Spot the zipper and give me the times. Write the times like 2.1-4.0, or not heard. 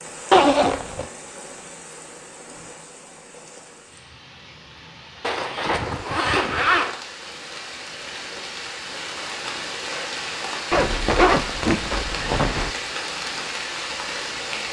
0.3-1.1, 5.2-7.0, 10.7-12.7.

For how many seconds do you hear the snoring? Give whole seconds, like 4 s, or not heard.
not heard.